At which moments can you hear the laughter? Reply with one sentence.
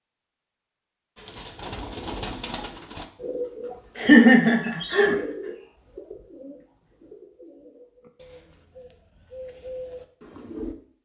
The laughter can be heard from 4.0 to 5.2 s.